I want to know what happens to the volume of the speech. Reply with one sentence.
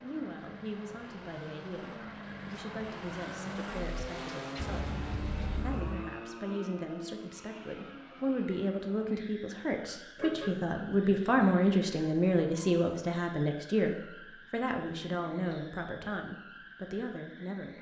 The volume of the speech goes up, then down.